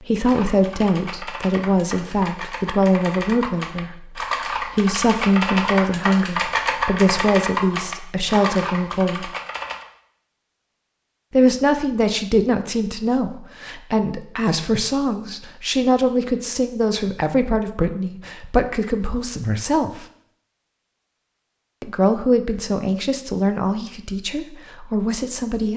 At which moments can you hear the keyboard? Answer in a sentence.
You can hear the keyboard from 0.2 to 9.8 s.